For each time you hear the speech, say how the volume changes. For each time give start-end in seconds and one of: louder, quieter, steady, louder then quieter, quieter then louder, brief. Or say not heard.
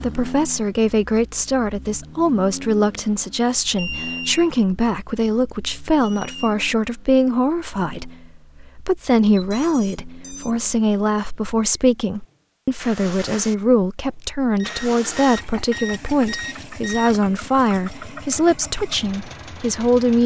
0.0-20.2 steady.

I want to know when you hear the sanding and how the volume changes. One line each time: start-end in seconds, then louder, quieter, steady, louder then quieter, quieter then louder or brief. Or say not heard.
not heard.